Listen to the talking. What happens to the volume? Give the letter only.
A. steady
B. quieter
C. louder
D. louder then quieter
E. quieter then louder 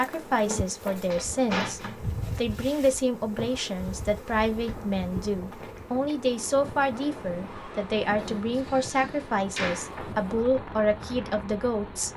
A.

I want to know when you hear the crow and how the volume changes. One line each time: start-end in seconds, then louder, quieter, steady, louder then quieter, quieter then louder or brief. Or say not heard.
not heard.